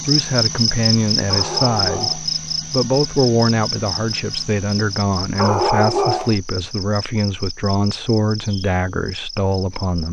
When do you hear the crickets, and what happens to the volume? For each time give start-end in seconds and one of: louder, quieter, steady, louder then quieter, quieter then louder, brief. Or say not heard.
0.0-10.0 quieter.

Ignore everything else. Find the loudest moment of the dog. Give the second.
6 s.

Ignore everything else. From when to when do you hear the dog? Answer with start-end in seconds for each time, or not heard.
1.2-2.2, 5.3-6.3.